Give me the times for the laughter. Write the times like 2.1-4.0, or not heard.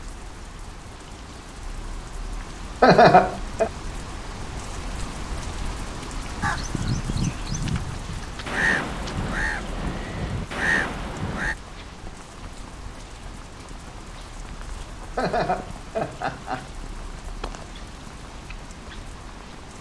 2.8-3.7, 15.2-16.6.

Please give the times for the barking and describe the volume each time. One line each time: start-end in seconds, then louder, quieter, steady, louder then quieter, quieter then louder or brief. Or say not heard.
not heard.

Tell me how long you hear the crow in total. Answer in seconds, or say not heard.
5 s.